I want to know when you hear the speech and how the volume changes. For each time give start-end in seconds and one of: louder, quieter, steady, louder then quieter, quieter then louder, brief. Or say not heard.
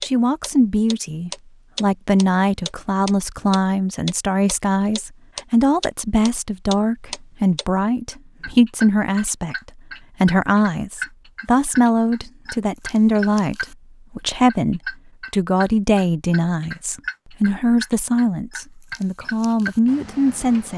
0.0-20.7 steady.